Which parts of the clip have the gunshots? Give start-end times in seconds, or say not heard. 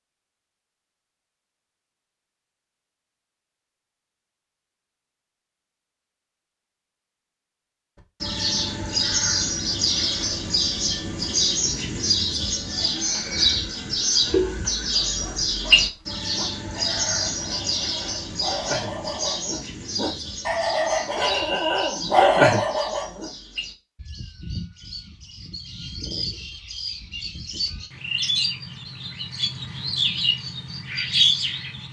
not heard.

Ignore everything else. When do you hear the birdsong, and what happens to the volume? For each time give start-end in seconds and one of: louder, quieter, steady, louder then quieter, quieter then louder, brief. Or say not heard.
8.2-31.8 quieter then louder.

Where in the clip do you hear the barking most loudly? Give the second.
22 s.